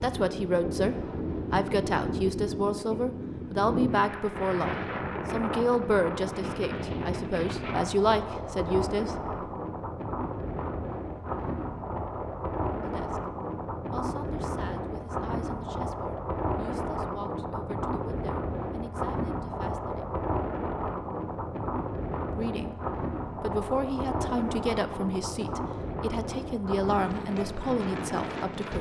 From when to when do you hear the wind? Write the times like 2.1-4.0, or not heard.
0.0-28.7.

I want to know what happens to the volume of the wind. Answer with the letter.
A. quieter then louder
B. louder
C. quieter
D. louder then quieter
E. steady
E.